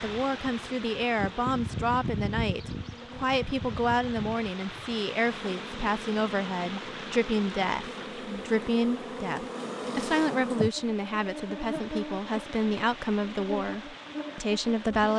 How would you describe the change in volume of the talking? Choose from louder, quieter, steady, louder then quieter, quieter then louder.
steady.